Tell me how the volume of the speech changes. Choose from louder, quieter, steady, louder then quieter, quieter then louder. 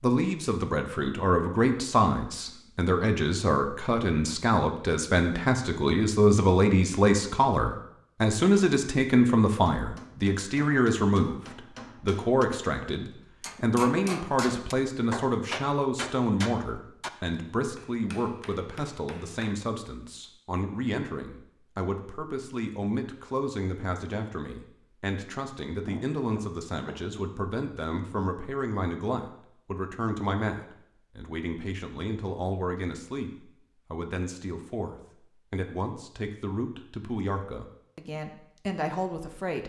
quieter.